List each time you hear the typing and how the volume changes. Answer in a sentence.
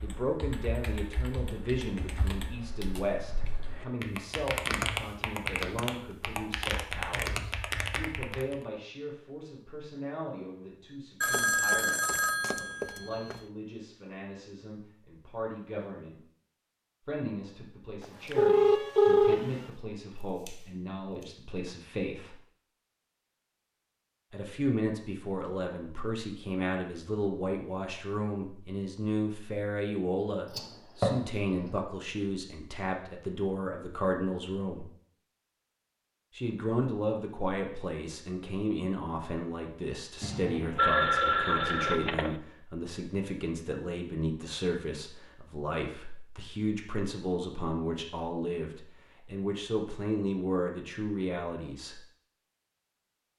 The typing can be heard from 0.0 to 8.6 s, getting louder.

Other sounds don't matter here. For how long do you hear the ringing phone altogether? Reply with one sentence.
You can hear the ringing phone for 6 seconds altogether.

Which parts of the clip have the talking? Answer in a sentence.
You can hear the talking from 0.0 to 16.2 s, from 17.1 to 22.4 s, from 24.3 to 34.9 s and from 36.4 to 52.0 s.